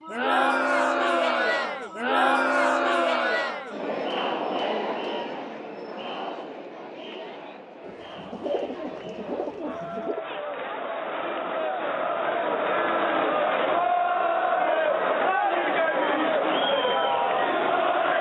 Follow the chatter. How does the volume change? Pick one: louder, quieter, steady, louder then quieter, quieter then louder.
quieter then louder.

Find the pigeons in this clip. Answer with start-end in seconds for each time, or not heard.
7.8-10.2.